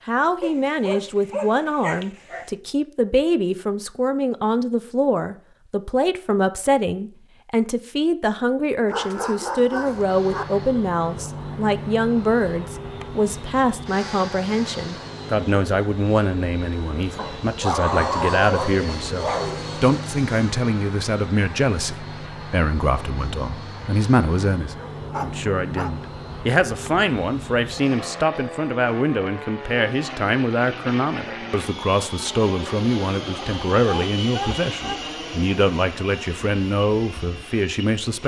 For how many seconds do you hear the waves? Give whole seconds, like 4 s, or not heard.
not heard.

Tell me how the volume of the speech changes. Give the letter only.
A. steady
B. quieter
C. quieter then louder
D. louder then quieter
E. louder
A.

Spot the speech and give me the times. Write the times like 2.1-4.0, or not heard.
0.1-38.2.